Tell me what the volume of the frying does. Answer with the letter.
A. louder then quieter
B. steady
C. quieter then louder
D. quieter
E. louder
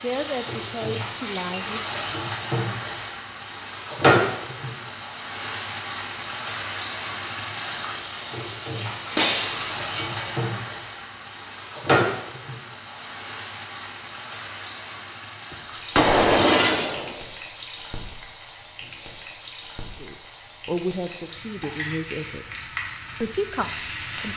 D.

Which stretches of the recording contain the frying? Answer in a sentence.
The frying can be heard from 0.0 to 24.3 s.